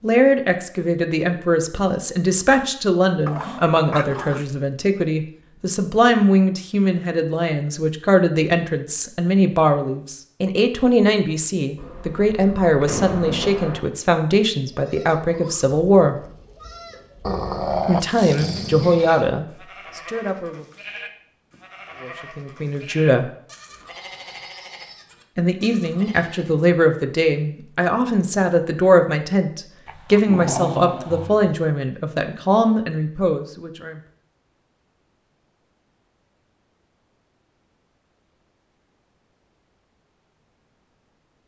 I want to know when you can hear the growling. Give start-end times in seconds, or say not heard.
3.2-4.6, 17.2-19.1, 29.9-31.6.